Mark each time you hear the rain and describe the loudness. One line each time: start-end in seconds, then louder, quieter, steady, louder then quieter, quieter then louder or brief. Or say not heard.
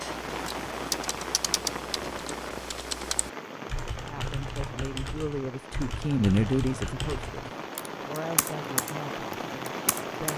0.0-10.3 quieter then louder.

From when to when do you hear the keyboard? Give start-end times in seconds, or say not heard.
0.0-10.3.